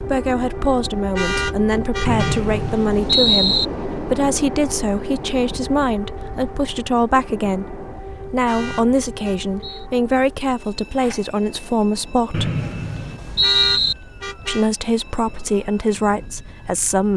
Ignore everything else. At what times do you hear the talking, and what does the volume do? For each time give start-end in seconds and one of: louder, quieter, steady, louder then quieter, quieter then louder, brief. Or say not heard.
0.0-12.5 steady
14.4-17.1 brief.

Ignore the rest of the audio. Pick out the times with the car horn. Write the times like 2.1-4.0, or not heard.
1.1-2.4, 8.4-9.4, 13.4-14.7.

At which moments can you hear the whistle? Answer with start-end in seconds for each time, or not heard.
2.0-3.6, 8.6-9.9, 12.3-13.9.